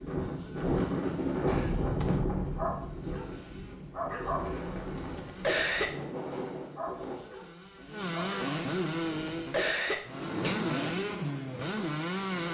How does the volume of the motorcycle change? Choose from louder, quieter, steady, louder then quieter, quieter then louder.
louder.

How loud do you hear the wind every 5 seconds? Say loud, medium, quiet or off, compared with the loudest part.
loud, medium, off.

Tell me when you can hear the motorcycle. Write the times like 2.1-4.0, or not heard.
0.0-12.4.